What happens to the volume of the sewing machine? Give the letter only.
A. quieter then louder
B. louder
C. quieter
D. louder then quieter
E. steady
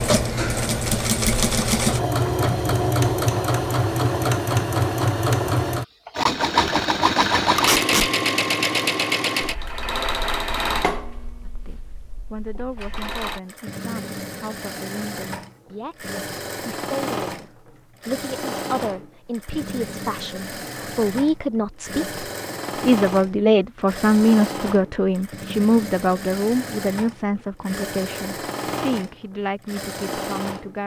C.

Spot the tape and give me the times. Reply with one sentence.
The tape can be heard from 7.5 to 8.1 s.